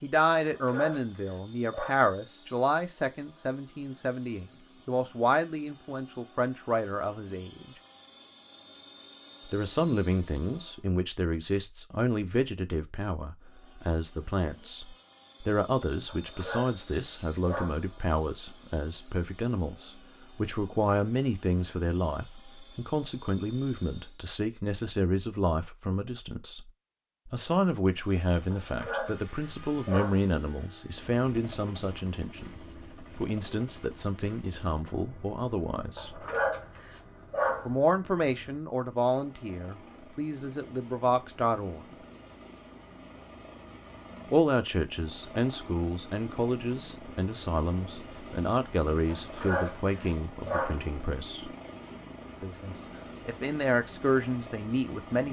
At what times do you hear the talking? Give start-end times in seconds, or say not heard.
0.0-7.8, 9.5-36.2, 37.6-42.0, 44.3-51.5, 52.4-55.2.